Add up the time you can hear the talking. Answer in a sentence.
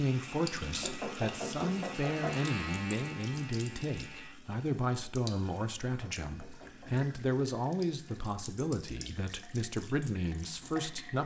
The talking can be heard for 11 seconds in total.